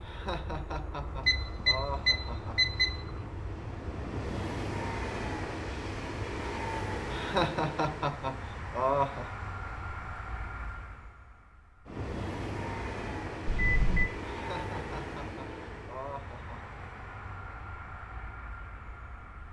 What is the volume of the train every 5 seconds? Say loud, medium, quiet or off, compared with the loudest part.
loud, loud, loud, medium.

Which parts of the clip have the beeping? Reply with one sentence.
The beeping can be heard from 1.2 to 2.9 s and from 13.4 to 14.1 s.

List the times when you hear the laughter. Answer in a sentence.
You can hear the laughter from 0.0 to 2.6 s, from 7.1 to 9.2 s and from 14.3 to 16.8 s.